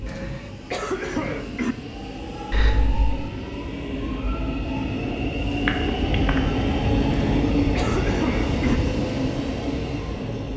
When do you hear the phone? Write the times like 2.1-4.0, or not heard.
2.5-3.1, 5.7-6.4.